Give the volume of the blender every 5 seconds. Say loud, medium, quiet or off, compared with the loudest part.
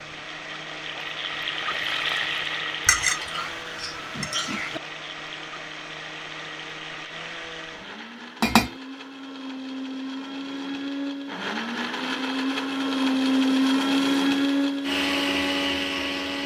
quiet, quiet, loud, loud.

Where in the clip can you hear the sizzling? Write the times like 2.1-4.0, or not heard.
0.0-8.2.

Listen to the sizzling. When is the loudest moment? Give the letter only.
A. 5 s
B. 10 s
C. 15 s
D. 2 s
D.